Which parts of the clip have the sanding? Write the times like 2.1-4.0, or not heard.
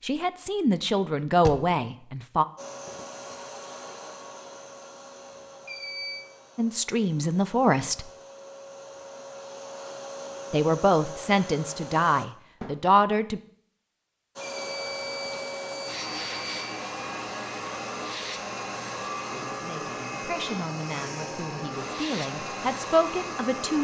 not heard.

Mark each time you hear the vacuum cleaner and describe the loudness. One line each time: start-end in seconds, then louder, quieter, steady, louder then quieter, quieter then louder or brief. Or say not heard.
2.5-12.3 quieter then louder
14.3-23.7 steady.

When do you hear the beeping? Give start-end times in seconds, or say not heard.
5.7-6.2, 14.4-16.9.